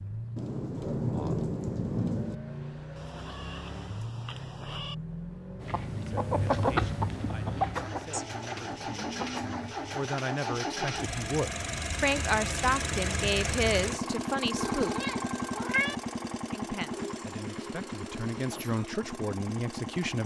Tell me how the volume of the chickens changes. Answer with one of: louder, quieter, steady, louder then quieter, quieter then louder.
quieter then louder.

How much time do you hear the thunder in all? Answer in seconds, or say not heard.
2 s.